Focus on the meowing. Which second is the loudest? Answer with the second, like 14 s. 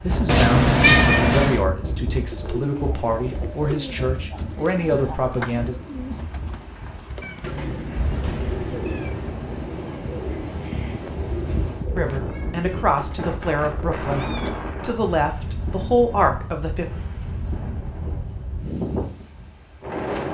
1 s.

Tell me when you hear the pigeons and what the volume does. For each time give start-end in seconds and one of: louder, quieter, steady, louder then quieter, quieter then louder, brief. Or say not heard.
2.1-13.3 steady.